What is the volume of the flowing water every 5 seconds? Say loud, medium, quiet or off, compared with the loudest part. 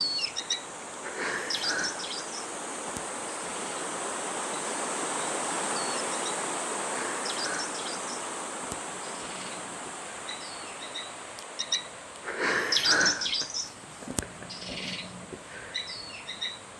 loud, loud, medium, quiet.